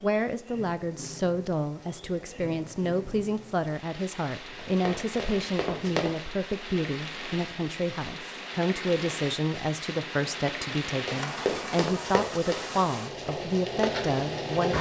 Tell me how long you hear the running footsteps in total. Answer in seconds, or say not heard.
3 s.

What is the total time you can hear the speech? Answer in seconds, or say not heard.
15 s.